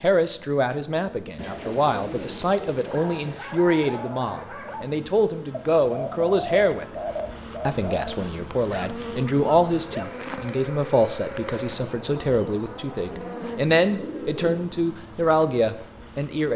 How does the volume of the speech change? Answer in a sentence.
The volume of the speech stays about the same.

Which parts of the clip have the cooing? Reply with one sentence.
The cooing can be heard from 1.4 to 3.4 s, from 5.5 to 8.0 s and from 13.1 to 14.7 s.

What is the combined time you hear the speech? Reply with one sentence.
The speech can be heard for 16 seconds in total.